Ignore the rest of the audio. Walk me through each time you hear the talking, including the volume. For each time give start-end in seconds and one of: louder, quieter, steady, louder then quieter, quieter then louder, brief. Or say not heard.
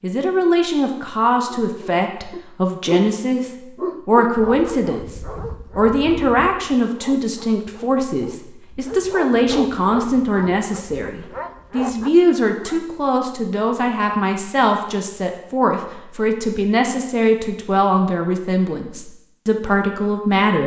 0.0-20.6 steady.